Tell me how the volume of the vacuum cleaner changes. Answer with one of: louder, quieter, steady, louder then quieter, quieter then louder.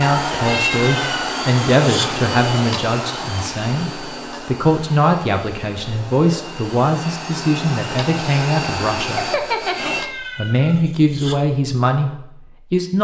quieter then louder.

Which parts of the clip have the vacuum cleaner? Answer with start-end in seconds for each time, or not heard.
0.0-10.1.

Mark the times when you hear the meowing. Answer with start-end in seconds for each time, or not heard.
0.5-2.1, 9.7-11.4.